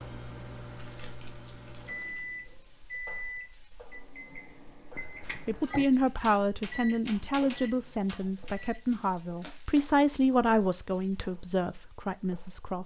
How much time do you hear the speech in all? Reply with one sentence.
You can hear the speech for 7 seconds altogether.